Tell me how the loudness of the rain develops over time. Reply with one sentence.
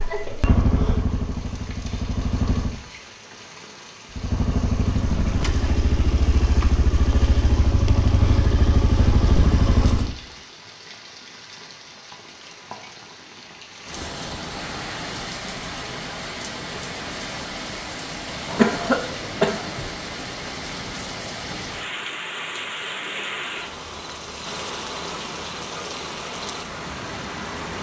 The volume of the rain goes up.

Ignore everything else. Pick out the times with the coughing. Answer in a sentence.
You can hear the coughing from 18.4 to 19.9 s.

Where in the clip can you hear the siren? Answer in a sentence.
The siren can't be heard in this clip.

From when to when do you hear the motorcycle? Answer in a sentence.
You can hear the motorcycle from 0.0 to 2.8 s and from 4.1 to 10.2 s.